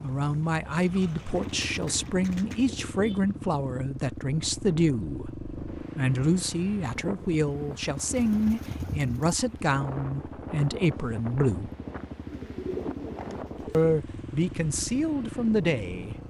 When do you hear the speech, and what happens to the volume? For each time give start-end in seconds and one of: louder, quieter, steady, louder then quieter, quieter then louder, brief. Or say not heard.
0.0-11.7 steady
13.7-16.1 brief.